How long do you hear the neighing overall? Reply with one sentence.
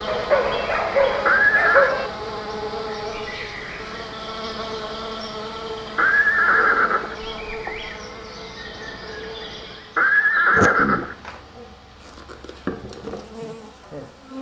The neighing can be heard for 4 seconds in total.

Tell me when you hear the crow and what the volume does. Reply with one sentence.
You can't hear the crow here.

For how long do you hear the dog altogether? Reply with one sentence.
You can hear the dog for 3 seconds altogether.